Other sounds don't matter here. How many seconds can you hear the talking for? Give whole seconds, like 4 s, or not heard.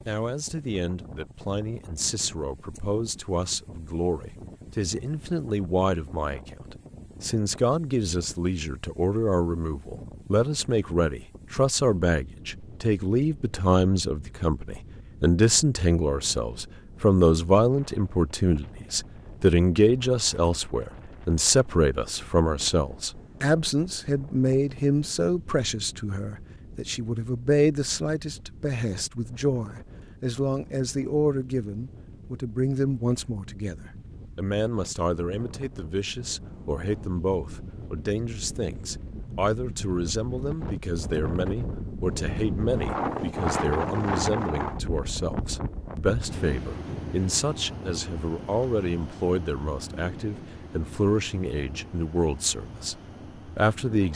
54 s.